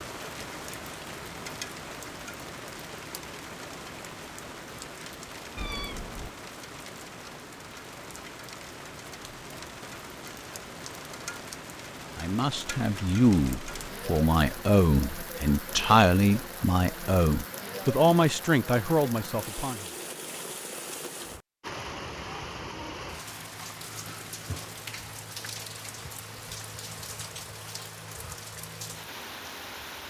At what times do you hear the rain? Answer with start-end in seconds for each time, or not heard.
0.0-30.0.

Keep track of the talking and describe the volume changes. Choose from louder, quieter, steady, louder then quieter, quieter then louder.
steady.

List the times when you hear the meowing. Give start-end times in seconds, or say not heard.
5.5-6.3.